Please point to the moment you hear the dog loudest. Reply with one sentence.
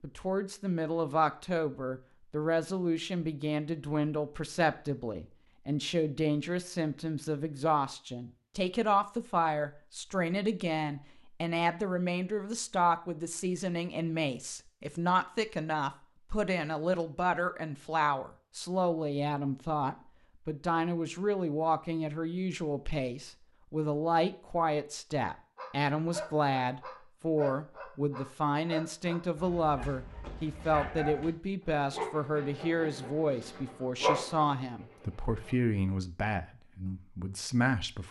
The volume of the dog peaks at 34 seconds.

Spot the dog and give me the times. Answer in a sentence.
You can hear the dog from 25.6 to 35.5 s.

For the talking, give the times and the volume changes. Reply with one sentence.
The talking can be heard from 0.0 to 38.0 s, at a steady volume.